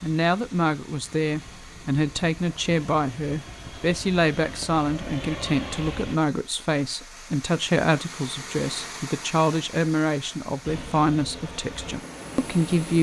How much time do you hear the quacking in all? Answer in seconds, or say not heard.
not heard.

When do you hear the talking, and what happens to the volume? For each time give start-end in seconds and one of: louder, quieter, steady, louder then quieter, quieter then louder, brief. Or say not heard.
0.0-12.9 steady.